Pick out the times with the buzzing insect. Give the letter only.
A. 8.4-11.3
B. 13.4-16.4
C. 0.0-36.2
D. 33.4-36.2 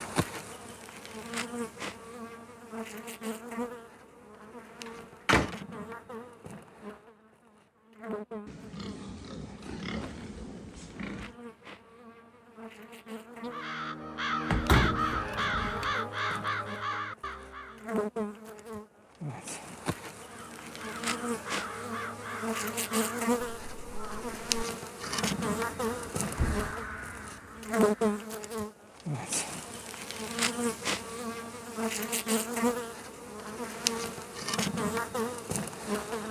C.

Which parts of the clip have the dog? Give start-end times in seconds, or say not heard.
not heard.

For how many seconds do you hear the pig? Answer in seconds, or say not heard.
3 s.